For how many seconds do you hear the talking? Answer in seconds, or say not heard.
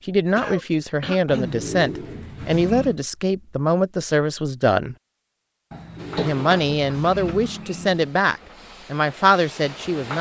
9 s.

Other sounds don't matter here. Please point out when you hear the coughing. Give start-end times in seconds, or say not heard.
0.3-1.6, 6.2-6.7.